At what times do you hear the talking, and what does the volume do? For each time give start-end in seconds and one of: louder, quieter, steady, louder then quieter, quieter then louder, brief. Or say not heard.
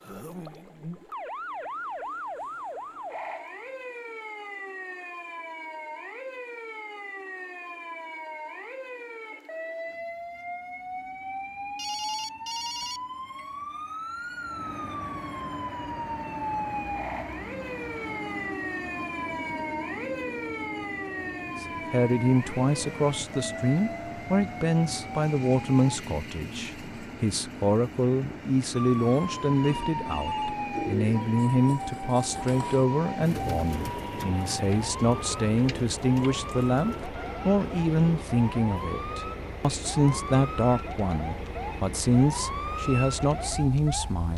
21.6-44.3 steady.